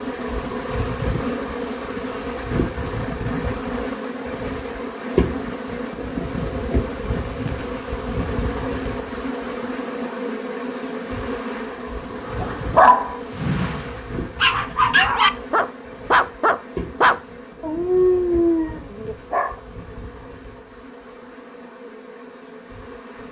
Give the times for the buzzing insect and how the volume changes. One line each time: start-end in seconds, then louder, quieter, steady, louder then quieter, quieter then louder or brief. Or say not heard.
0.0-23.2 quieter.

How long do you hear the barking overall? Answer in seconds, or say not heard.
7 s.